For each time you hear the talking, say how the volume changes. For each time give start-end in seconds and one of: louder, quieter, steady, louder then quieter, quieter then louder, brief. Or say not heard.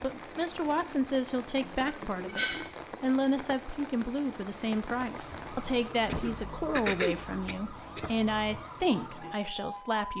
0.0-10.1 steady.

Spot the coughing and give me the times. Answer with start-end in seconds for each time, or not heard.
1.6-2.8, 6.0-8.2.